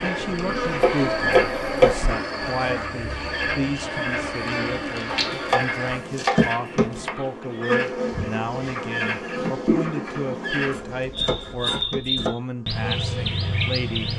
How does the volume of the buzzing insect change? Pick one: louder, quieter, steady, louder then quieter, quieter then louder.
quieter.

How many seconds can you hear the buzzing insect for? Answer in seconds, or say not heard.
14 s.